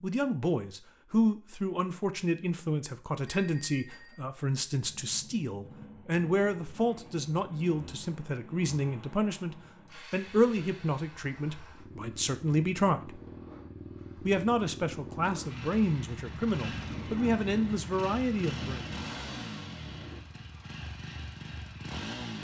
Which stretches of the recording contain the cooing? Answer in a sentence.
You can't hear the cooing here.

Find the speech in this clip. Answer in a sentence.
You can hear the speech from 0.0 to 13.2 s and from 14.2 to 18.9 s.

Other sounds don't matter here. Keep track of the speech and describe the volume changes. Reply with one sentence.
The volume of the speech stays about the same.